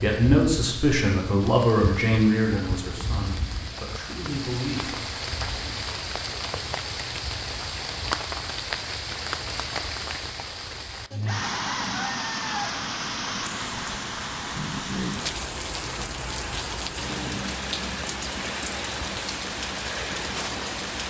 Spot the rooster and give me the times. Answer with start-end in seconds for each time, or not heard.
11.2-12.8.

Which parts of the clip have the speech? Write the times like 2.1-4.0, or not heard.
0.0-5.0.